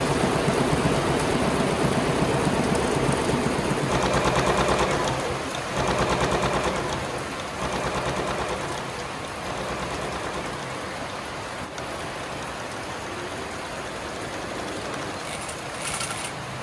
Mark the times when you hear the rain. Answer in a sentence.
The rain can be heard from 0.0 to 16.5 s.